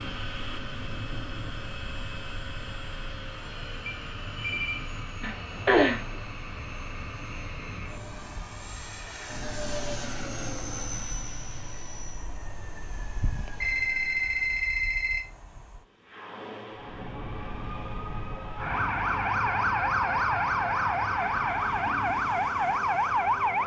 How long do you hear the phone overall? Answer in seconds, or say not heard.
3 s.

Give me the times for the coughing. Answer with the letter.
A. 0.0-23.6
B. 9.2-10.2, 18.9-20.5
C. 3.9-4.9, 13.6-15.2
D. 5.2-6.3
D.